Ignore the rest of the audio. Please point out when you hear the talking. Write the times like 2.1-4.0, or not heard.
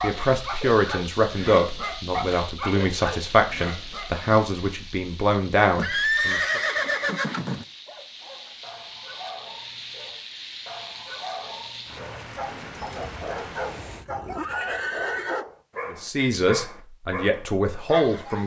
0.0-6.6, 15.9-18.4.